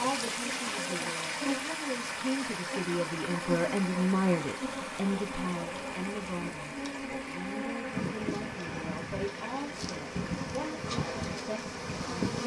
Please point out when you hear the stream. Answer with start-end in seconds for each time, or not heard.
0.0-12.3.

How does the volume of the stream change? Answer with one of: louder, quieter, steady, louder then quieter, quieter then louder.
quieter.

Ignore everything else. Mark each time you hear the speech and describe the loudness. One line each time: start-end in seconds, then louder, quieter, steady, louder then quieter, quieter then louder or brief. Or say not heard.
0.0-12.3 louder then quieter.